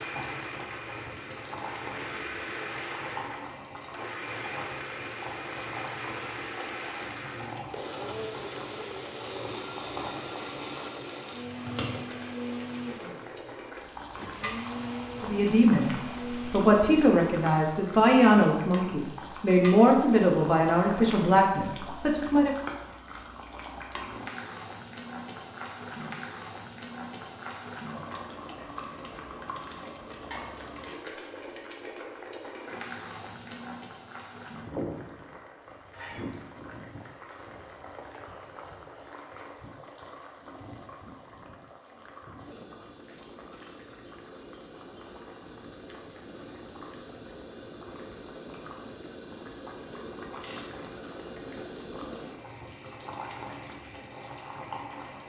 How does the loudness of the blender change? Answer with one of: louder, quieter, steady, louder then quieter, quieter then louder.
steady.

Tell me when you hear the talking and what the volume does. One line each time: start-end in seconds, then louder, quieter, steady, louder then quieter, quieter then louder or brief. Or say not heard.
15.2-22.5 steady.